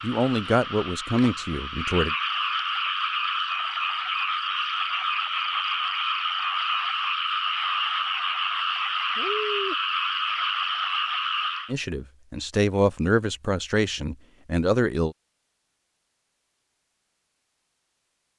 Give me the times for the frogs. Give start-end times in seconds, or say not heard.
0.0-11.8.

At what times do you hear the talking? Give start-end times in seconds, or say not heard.
0.0-2.1, 11.7-15.2.